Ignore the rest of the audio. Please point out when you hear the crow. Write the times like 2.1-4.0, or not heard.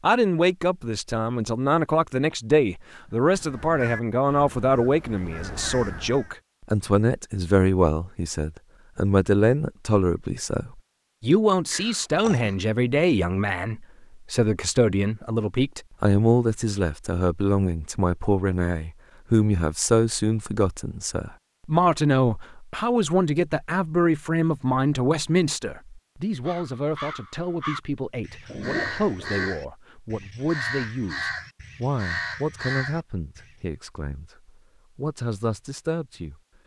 3.0-6.3, 26.4-33.5.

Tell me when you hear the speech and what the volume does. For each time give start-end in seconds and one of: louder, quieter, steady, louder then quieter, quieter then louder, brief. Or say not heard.
0.0-36.4 quieter.